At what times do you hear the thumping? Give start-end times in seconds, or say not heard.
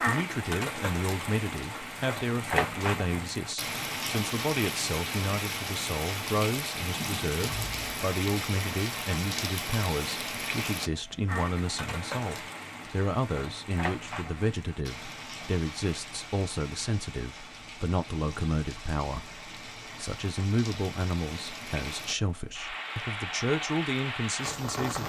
7.4-8.1.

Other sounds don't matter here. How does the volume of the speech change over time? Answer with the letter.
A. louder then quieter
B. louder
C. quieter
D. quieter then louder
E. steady
E.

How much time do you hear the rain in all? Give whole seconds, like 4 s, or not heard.
25 s.